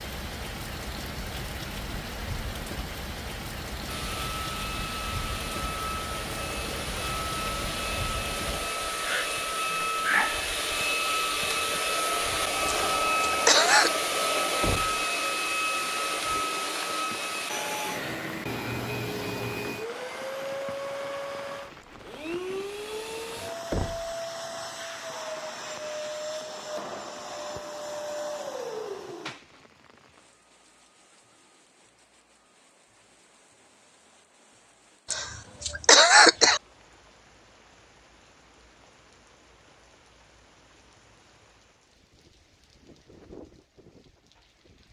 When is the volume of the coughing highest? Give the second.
36 s.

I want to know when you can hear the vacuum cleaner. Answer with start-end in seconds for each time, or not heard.
3.9-29.6.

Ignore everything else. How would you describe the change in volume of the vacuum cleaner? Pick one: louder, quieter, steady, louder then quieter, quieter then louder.
louder then quieter.